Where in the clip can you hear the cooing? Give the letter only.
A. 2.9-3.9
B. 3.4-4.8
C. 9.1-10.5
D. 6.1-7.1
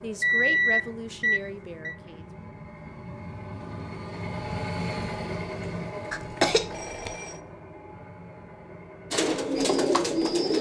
C.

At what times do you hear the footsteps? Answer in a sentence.
The footsteps can't be heard in this clip.